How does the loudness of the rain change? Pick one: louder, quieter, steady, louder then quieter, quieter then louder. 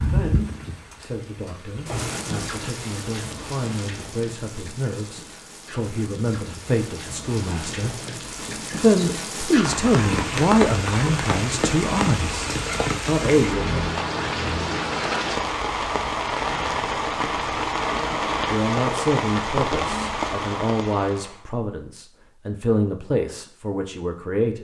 louder.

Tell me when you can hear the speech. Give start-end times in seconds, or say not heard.
0.0-8.0, 8.7-13.9, 18.5-24.5.